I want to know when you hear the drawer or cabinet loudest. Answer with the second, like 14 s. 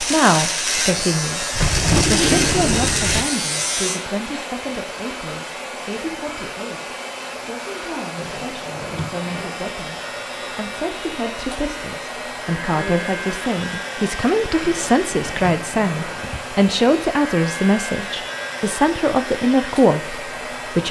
2 s.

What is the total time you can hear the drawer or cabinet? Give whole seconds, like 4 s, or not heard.
5 s.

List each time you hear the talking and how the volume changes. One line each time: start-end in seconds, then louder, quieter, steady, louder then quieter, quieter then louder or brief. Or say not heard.
0.0-20.8 quieter then louder.